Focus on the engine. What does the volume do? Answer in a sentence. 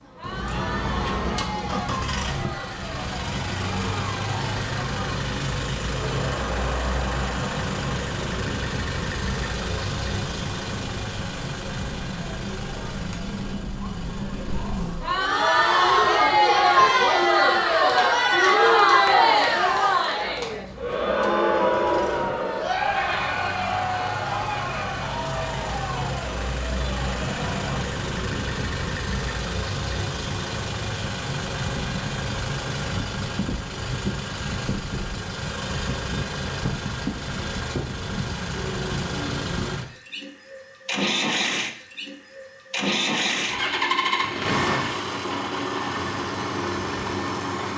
The volume of the engine goes down, then up.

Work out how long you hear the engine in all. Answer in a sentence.
You can hear the engine for 48 seconds altogether.